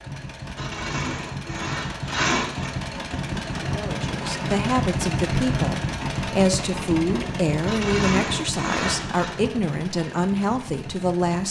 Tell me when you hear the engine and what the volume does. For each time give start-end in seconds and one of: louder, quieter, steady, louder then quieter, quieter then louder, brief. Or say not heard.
0.0-11.4 louder then quieter.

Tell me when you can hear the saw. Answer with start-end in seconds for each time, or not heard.
0.6-2.8, 7.7-9.3.